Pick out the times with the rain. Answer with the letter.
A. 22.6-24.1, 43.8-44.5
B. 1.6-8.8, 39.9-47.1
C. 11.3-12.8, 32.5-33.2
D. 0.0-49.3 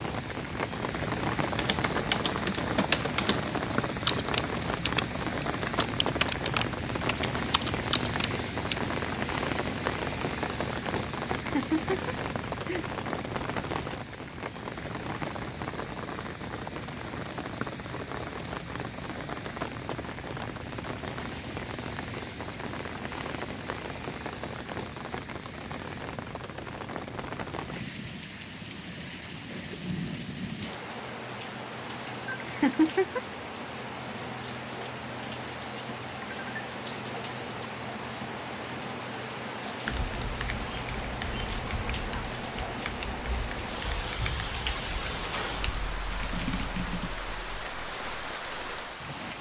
D.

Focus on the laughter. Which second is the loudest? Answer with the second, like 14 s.
33 s.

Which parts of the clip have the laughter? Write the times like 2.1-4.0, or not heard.
11.3-12.8, 32.5-33.2.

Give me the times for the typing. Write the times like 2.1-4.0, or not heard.
1.6-8.8, 39.9-47.1.